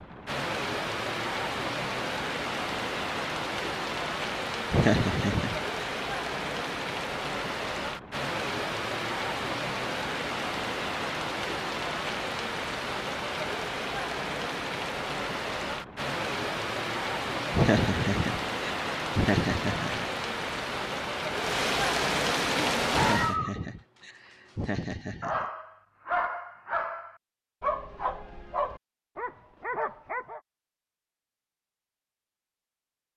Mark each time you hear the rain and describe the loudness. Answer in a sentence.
The rain can be heard from 0.0 to 23.4 s, at a steady volume.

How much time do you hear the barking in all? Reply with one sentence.
You can hear the barking for 8 seconds altogether.